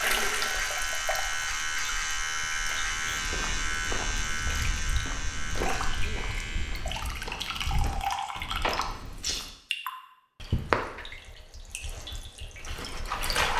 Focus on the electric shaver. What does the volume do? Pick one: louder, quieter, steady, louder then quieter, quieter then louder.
quieter.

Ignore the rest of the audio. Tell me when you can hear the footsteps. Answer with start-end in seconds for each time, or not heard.
2.6-9.5.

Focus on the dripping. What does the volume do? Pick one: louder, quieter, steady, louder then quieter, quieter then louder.
quieter then louder.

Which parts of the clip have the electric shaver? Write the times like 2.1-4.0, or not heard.
0.0-7.0.